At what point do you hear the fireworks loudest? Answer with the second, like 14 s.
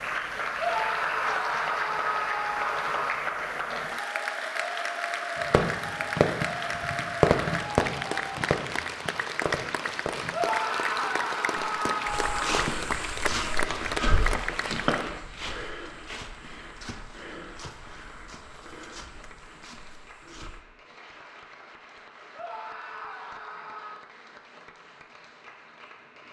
7 s.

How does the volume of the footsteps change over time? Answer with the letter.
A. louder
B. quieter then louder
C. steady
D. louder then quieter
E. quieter
E.